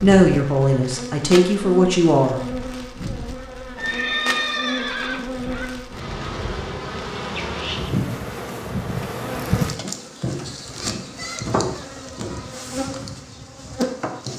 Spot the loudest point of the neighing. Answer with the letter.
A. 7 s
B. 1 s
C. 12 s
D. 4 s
D.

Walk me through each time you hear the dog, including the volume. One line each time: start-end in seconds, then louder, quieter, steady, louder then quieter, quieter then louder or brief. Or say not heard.
not heard.